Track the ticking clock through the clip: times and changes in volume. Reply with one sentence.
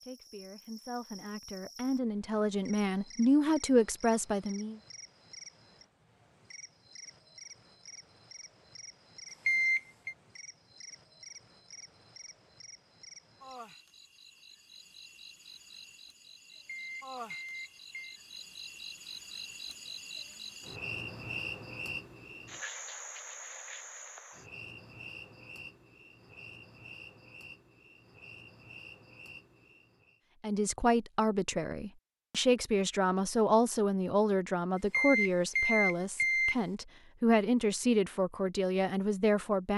The ticking clock can't be heard in this clip.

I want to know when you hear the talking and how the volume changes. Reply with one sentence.
The talking can be heard from 0.0 to 4.8 s, getting louder; and from 30.4 to 39.7 s, at a steady volume.